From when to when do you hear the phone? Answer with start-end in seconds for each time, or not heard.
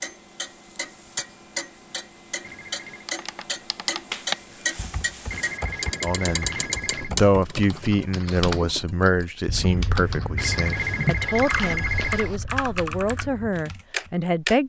2.4-3.0, 5.3-7.2, 10.3-12.4.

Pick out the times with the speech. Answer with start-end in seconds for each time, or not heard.
6.0-14.6.